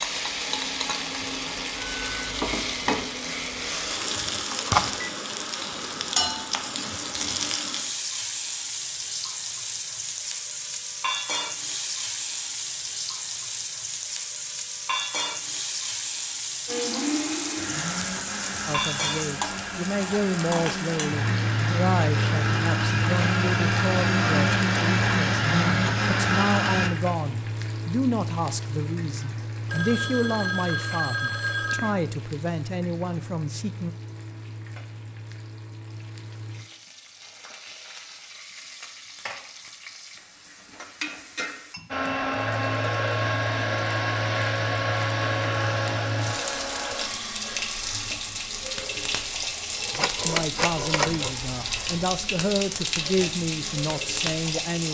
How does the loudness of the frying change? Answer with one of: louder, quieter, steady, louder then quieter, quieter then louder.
quieter then louder.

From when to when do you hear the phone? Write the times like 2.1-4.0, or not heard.
4.5-5.1, 29.6-31.9, 49.9-51.3.